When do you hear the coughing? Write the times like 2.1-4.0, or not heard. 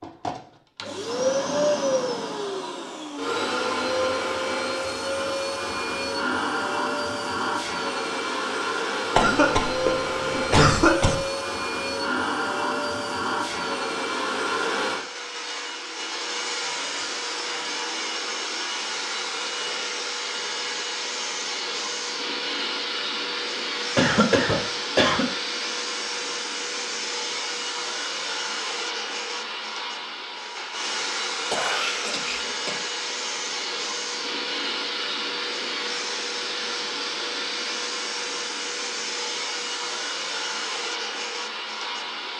9.2-11.2, 23.9-25.2, 31.5-32.8.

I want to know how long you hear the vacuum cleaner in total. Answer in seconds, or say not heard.
42 s.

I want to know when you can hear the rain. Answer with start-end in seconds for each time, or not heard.
not heard.